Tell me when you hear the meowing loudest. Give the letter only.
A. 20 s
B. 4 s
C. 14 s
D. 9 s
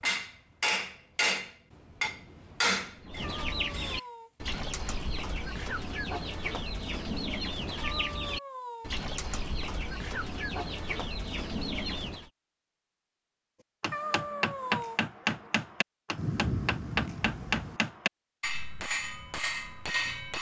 C.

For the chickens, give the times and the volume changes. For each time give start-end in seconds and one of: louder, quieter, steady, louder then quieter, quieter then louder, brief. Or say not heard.
2.8-12.3 steady.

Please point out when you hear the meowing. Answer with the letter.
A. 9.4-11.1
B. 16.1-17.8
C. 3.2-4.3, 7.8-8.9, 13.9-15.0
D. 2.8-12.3
C.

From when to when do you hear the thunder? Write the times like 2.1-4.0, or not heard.
16.1-17.8.